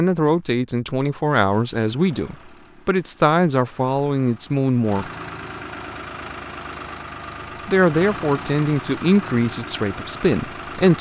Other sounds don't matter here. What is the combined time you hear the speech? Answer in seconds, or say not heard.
8 s.